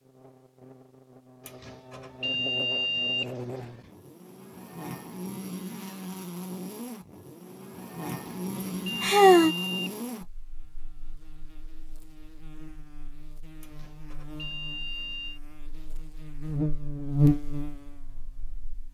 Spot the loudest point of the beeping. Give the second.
3 s.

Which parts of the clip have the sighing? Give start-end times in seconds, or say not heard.
9.0-9.6.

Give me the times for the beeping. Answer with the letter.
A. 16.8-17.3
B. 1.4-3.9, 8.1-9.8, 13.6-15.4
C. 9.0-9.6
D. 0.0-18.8
B.